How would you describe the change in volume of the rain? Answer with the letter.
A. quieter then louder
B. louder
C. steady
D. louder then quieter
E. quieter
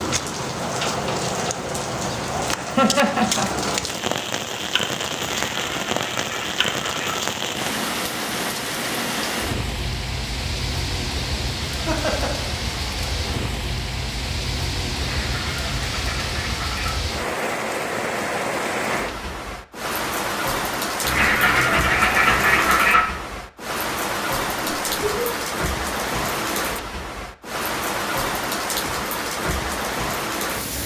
C.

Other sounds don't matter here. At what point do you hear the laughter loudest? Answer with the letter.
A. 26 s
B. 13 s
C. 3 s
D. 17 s
C.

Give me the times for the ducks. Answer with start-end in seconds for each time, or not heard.
5.3-7.2, 14.9-16.9, 21.0-23.1.